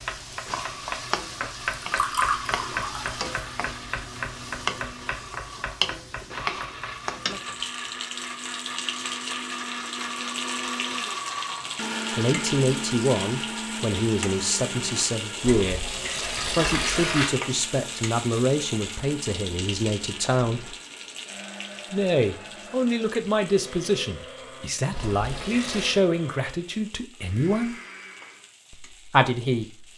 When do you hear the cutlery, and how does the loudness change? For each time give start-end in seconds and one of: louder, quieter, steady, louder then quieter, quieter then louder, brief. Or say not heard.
not heard.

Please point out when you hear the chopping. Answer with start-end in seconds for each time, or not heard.
0.0-7.0.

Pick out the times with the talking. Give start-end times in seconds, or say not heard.
12.2-20.8, 21.9-27.8, 28.7-29.9.